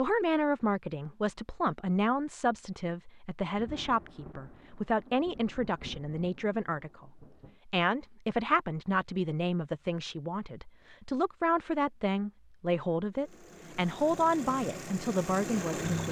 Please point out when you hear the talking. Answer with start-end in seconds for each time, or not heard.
0.0-16.0.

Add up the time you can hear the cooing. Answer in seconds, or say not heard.
not heard.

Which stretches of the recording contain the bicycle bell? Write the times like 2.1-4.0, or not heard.
not heard.